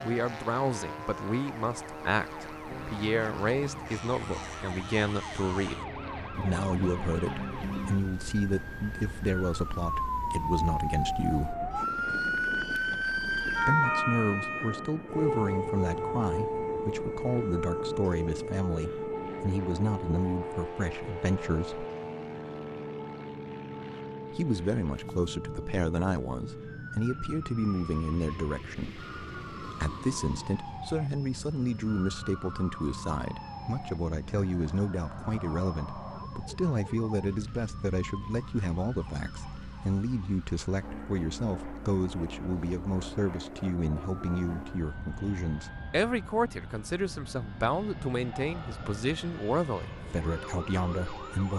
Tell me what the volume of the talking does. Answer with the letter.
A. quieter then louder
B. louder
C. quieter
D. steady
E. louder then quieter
D.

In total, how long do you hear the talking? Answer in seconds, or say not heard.
47 s.